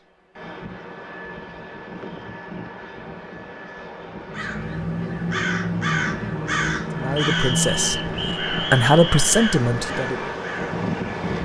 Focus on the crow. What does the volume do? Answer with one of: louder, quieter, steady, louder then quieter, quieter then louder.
quieter.